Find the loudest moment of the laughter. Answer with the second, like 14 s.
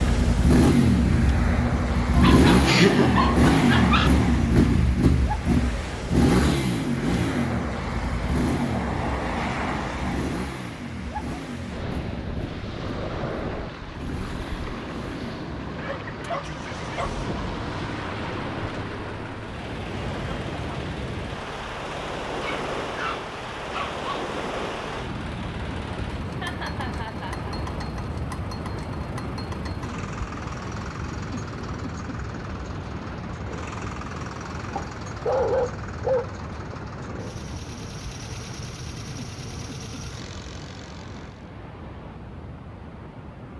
3 s.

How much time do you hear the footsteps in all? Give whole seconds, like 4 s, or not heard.
not heard.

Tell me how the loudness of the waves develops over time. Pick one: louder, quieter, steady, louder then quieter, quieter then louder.
quieter.